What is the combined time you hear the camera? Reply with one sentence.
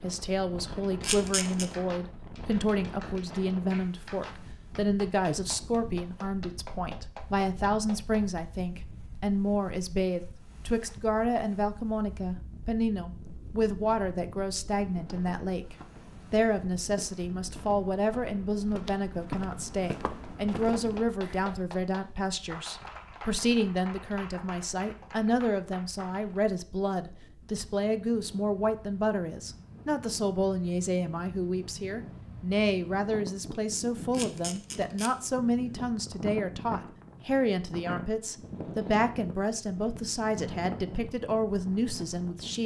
You can hear the camera for 2 seconds altogether.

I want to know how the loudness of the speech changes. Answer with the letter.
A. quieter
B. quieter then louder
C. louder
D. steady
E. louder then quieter
D.